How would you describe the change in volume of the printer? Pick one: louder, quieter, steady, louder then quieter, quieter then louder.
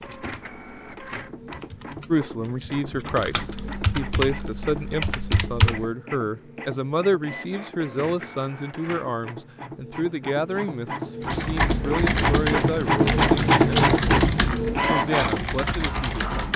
louder.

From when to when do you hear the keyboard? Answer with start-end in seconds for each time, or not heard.
0.0-5.9, 11.2-16.5.